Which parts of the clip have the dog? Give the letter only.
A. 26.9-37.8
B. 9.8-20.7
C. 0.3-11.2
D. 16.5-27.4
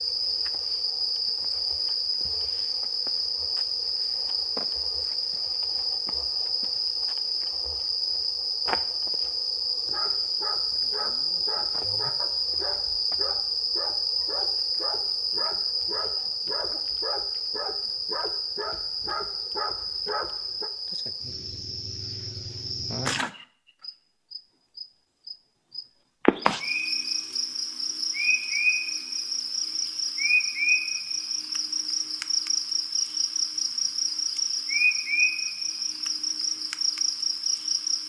B.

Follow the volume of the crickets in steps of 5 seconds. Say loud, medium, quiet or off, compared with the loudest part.
loud, loud, loud, loud, medium, loud, loud, loud.